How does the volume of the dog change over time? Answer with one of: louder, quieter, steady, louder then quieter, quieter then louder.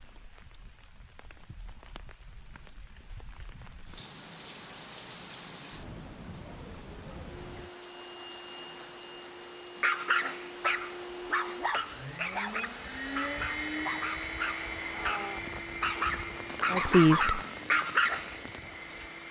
louder.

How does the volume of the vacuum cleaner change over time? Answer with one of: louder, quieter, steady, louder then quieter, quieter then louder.
louder then quieter.